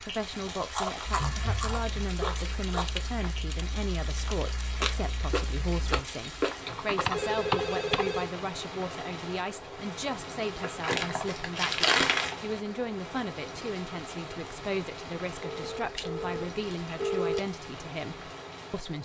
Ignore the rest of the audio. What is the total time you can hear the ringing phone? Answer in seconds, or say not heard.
4 s.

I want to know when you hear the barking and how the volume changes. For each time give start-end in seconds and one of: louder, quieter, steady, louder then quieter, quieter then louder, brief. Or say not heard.
not heard.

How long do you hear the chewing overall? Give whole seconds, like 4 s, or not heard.
8 s.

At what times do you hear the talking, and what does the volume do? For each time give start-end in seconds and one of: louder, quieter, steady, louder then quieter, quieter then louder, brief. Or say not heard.
0.0-18.9 steady.